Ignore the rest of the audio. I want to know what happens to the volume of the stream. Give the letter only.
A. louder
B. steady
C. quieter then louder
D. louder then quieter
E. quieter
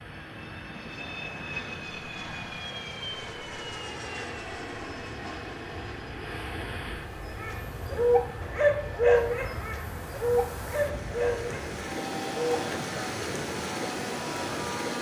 A.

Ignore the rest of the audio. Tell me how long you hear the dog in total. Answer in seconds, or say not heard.
5 s.